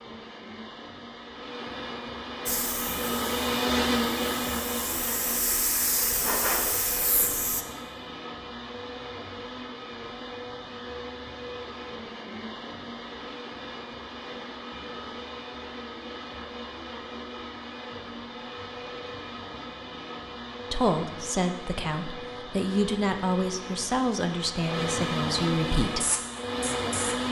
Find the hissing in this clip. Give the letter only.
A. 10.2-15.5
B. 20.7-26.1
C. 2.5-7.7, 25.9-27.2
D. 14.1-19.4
C.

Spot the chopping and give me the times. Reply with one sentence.
The chopping can't be heard in this clip.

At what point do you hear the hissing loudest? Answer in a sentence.
The volume of the hissing peaks at 6 seconds.